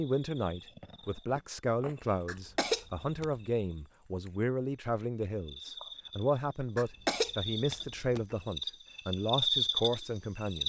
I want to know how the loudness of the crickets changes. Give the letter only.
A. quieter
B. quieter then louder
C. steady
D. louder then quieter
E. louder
B.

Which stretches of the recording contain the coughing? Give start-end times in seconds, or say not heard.
2.2-3.2, 6.8-8.3.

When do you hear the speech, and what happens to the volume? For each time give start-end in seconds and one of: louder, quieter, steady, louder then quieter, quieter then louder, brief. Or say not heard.
0.0-10.6 steady.